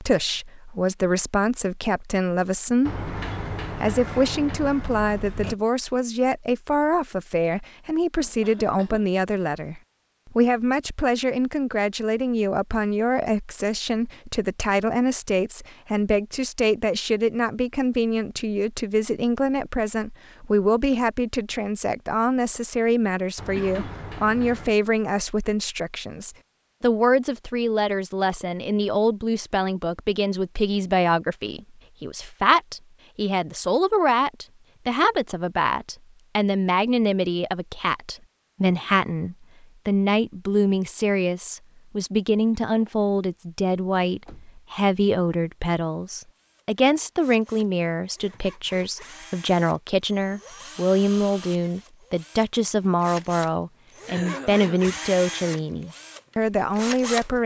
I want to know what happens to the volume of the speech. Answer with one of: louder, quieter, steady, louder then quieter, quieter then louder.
steady.